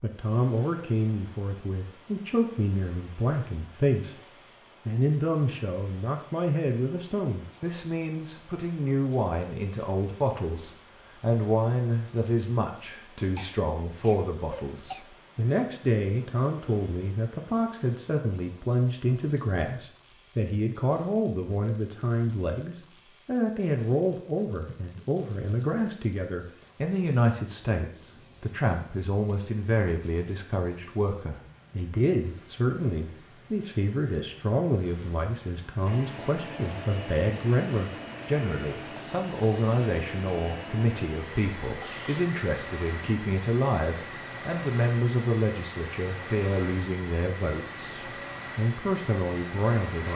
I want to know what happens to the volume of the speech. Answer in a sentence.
The volume of the speech stays about the same.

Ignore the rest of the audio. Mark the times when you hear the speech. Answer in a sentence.
The speech can be heard from 0.0 to 4.2 s and from 4.8 to 50.1 s.